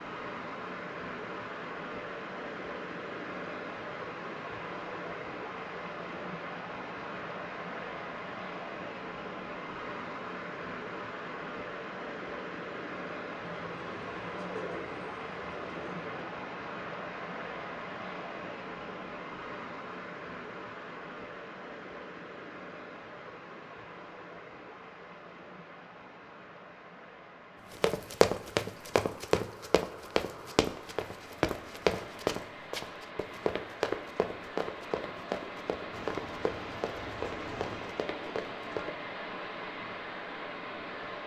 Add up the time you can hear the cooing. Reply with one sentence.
The cooing can be heard for 5 seconds in total.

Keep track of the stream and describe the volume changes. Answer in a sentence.
The volume of the stream goes down, then up.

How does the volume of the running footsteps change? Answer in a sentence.
The volume of the running footsteps goes down.